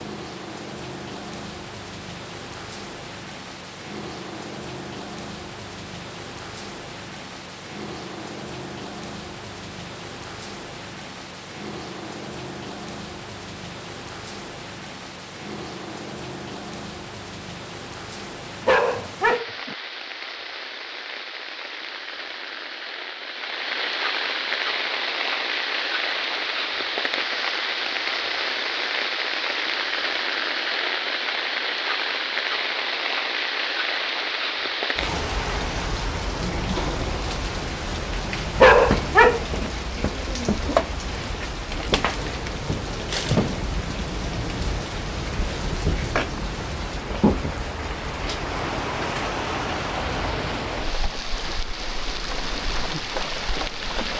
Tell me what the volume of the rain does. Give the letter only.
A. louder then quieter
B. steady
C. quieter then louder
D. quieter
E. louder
E.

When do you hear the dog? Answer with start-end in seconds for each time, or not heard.
18.6-19.8, 38.5-39.7.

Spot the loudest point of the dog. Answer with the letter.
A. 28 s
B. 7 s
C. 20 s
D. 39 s
D.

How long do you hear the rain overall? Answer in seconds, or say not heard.
54 s.